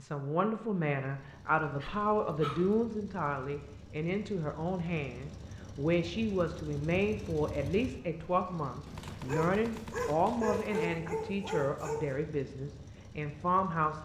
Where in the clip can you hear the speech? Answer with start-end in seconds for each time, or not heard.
0.0-14.0.